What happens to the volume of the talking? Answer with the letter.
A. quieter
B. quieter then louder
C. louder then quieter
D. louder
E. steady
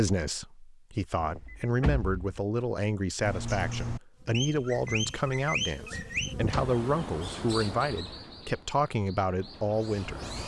E.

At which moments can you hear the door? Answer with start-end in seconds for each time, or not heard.
1.2-2.4, 5.9-6.8.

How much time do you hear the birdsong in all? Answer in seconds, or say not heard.
7 s.